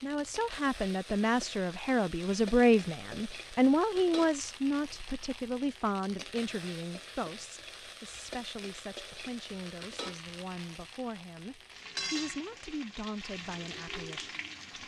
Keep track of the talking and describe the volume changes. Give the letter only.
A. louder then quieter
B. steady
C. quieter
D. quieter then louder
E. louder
C.